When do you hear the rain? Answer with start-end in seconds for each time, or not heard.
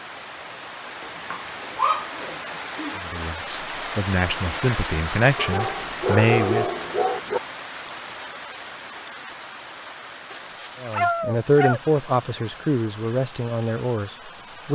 0.0-14.6.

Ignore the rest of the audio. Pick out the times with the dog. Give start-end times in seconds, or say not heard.
1.0-3.0, 5.3-7.4, 10.3-11.8.